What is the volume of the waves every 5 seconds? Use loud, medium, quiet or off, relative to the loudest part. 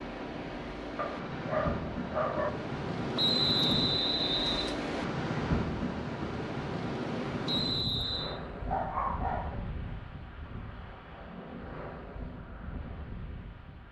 loud, loud, medium.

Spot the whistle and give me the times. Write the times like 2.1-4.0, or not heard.
3.1-4.8, 7.5-8.4.